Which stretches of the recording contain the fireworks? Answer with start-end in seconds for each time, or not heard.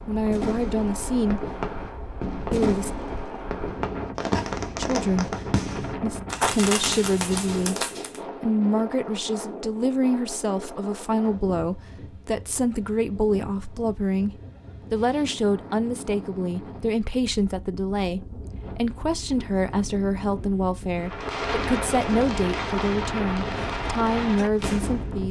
0.0-8.2, 20.9-25.2.